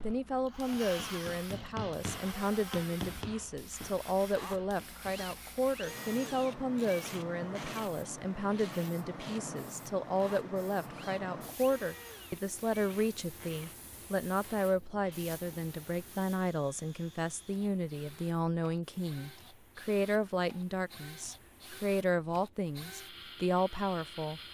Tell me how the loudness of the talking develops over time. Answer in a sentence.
The volume of the talking stays about the same.